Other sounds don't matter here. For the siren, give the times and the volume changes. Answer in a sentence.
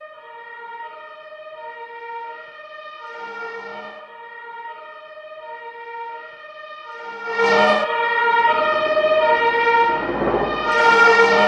The siren can be heard from 0.0 to 11.4 s, getting louder.